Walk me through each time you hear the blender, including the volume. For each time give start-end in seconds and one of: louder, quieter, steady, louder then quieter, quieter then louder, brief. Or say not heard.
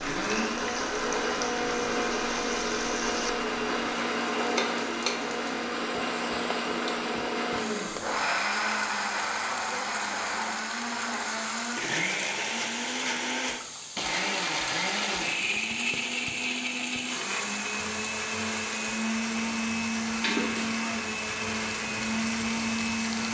0.0-23.3 steady.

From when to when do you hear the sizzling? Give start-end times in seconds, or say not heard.
0.0-23.3.